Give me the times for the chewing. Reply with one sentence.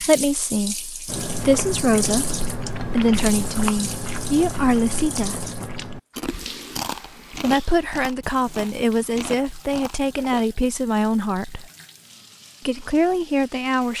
You can hear the chewing from 1.1 to 10.5 s.